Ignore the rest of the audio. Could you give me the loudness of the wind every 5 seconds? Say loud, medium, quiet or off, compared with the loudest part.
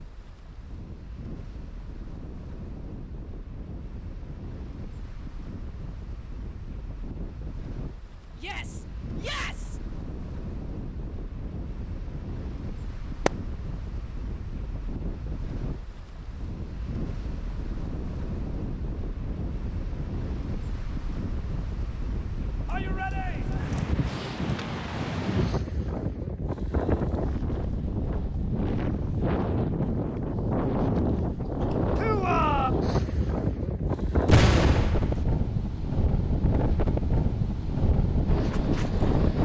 quiet, quiet, quiet, medium, medium, loud, loud, loud.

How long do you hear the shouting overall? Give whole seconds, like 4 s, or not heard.
3 s.